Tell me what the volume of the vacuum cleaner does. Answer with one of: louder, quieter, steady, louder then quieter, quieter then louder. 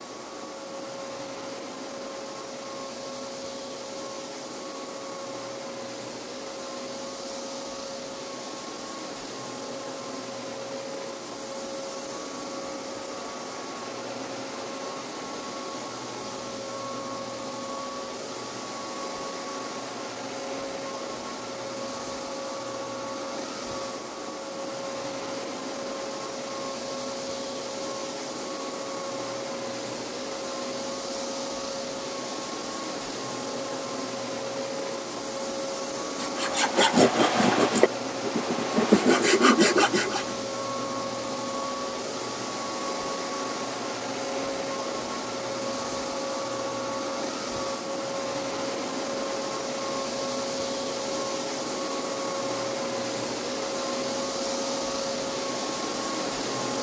louder.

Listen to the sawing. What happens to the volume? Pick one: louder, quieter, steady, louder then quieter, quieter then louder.
quieter then louder.